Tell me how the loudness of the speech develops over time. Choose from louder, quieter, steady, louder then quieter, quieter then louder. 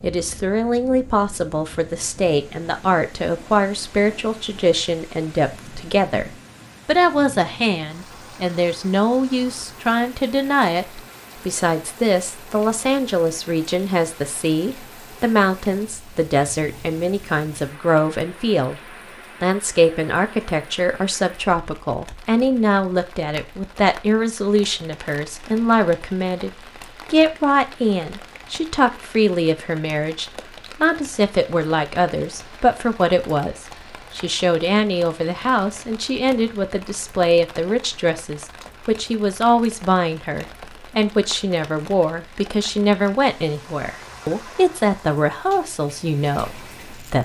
steady.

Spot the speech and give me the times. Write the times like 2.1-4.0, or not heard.
0.0-18.8, 19.4-47.2.